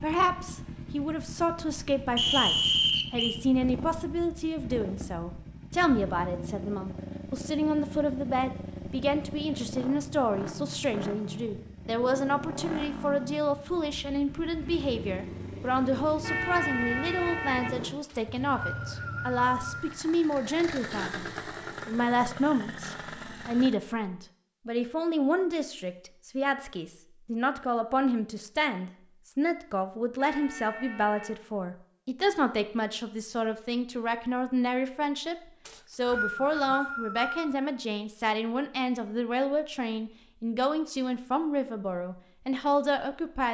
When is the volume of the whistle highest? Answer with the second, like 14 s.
3 s.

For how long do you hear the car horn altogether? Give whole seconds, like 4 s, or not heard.
3 s.